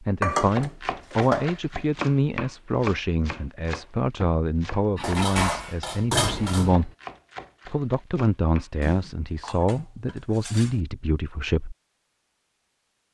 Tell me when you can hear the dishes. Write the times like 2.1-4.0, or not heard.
0.2-1.8, 5.0-6.9, 8.8-10.8.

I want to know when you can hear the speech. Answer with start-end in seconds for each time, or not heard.
0.0-6.9, 7.7-11.8.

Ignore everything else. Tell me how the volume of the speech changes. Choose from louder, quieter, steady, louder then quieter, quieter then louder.
steady.